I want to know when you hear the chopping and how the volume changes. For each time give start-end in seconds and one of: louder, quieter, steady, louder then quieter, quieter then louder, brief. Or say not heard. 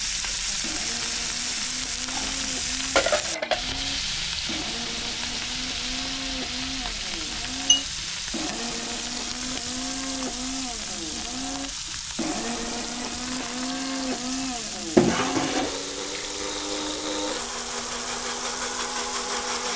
not heard.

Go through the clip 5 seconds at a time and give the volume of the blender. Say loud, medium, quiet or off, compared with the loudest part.
medium, medium, loud, loud.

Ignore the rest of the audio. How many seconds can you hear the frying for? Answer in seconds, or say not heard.
20 s.